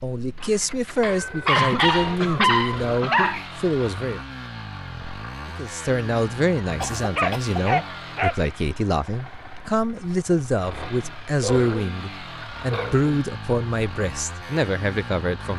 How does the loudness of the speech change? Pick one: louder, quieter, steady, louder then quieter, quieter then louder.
steady.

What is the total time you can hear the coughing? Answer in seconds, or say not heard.
3 s.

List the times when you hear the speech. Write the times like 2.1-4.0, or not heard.
0.0-4.2, 5.5-15.5.